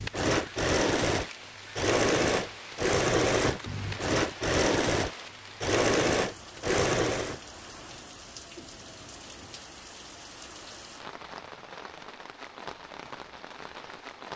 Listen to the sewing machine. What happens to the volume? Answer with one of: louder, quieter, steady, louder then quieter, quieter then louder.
steady.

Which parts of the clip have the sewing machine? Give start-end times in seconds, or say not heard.
0.0-7.4.